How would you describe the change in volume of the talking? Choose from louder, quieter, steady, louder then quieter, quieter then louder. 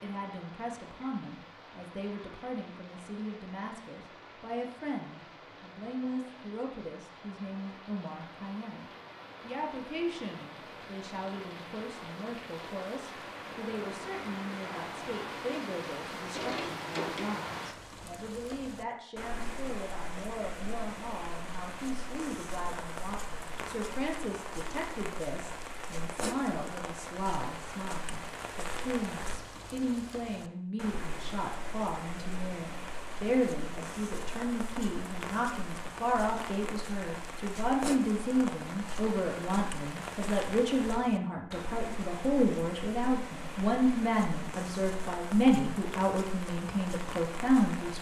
louder.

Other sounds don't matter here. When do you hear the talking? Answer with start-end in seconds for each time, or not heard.
0.0-47.9.